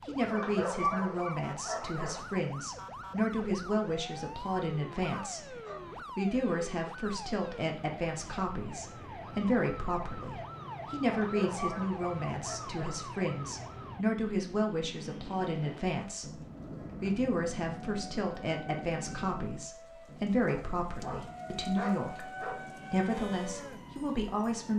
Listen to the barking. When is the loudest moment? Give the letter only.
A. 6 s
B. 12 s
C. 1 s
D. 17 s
C.